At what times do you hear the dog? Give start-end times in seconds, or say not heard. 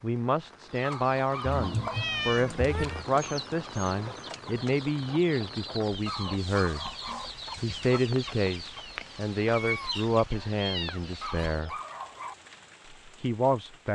0.8-2.0, 6.0-7.2, 11.2-12.3.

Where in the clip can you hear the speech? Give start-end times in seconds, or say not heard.
0.0-6.9, 7.6-11.8, 13.1-13.9.